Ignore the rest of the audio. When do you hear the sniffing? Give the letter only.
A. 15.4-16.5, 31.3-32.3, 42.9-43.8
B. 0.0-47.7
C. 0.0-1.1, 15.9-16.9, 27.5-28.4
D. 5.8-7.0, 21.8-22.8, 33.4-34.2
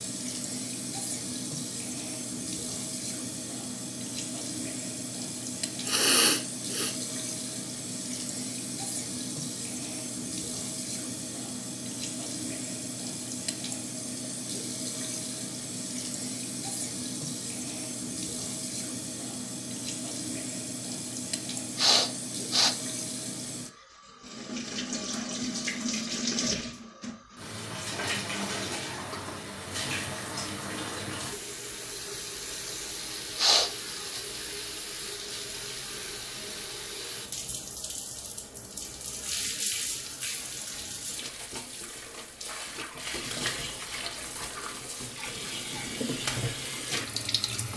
D.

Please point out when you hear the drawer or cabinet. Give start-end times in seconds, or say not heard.
not heard.